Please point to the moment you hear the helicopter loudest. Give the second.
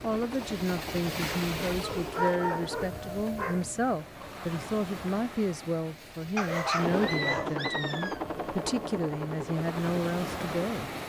7 s.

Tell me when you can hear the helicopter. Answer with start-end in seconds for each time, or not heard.
0.0-2.9, 6.8-11.0.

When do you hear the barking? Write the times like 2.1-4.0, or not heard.
1.8-3.6, 6.3-8.2.